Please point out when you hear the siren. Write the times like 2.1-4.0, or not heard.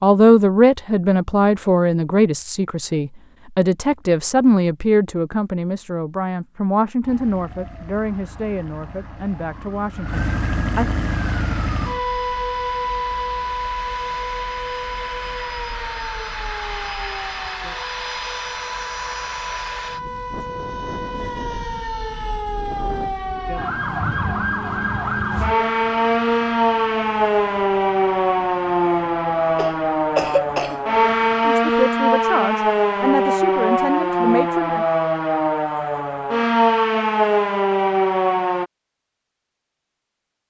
7.0-38.7.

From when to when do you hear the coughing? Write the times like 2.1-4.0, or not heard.
29.6-30.8.